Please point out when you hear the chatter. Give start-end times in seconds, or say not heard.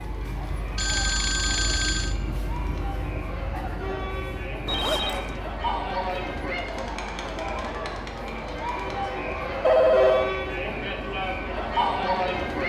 0.0-12.6.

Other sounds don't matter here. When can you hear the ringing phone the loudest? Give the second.
10 s.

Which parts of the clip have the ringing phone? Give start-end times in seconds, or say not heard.
0.8-2.1, 4.7-5.3, 9.6-10.3.